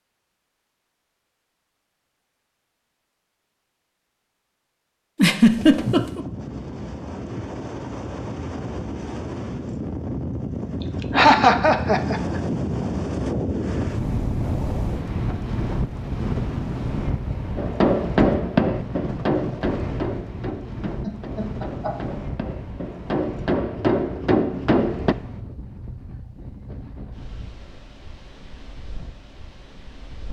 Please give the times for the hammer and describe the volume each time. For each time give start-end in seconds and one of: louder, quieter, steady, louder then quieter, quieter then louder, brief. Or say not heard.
17.6-25.1 quieter then louder.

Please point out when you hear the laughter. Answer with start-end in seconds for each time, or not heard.
5.2-6.2, 11.1-12.4, 20.9-22.1.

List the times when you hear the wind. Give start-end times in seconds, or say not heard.
5.5-30.2.